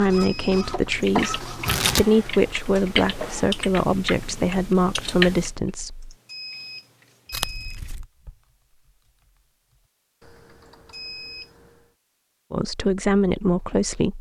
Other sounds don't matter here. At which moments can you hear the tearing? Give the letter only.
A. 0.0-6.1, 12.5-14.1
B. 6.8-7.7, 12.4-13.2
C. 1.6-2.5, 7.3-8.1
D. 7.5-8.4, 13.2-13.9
C.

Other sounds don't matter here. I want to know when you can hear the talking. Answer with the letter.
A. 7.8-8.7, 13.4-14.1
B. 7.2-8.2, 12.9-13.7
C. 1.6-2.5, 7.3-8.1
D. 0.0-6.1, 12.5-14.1
D.